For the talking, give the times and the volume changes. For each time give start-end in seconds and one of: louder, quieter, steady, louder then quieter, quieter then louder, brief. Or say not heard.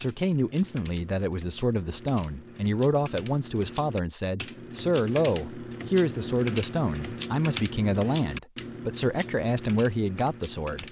0.0-10.8 steady.